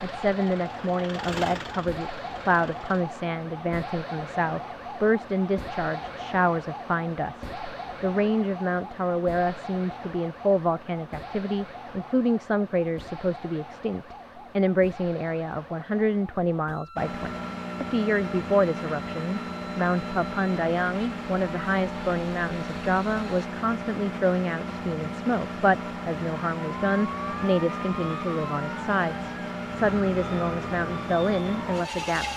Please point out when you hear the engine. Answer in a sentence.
The engine can be heard from 0.2 to 3.0 s and from 16.9 to 32.3 s.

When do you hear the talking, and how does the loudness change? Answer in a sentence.
You can hear the talking from 0.0 to 32.3 s, at a steady volume.